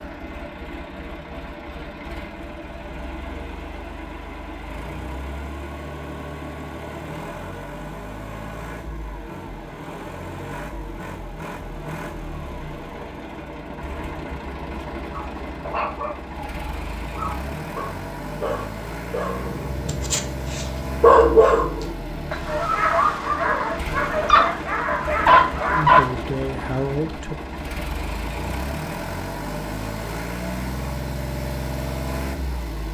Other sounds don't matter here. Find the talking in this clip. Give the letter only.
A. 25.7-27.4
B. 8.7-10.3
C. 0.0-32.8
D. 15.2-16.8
A.